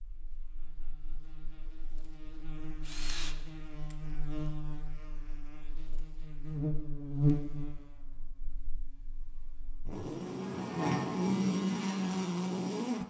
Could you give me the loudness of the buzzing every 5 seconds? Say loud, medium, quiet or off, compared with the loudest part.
quiet, medium, loud.